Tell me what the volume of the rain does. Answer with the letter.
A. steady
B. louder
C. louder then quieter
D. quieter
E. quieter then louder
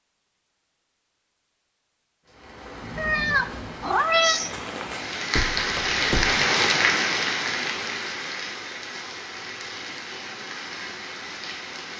C.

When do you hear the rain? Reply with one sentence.
The rain can be heard from 2.2 to 11.9 s.